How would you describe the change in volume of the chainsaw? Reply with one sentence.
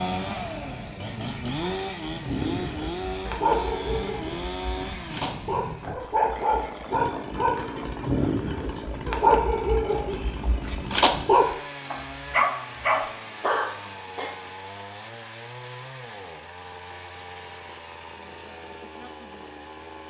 The volume of the chainsaw goes down.